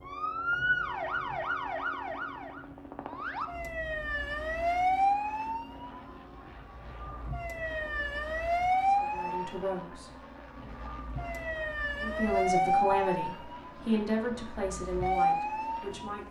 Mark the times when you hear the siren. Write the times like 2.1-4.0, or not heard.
0.0-16.2.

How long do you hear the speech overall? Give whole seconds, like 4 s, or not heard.
6 s.